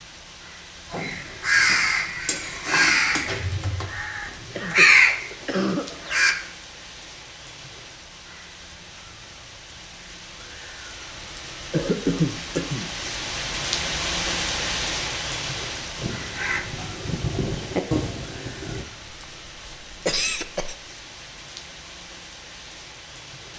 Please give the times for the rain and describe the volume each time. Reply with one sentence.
The rain can be heard from 0.0 to 23.5 s, getting louder then quieter.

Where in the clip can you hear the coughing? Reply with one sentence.
You can hear the coughing from 4.5 to 5.8 s, from 11.7 to 12.9 s and from 20.1 to 20.8 s.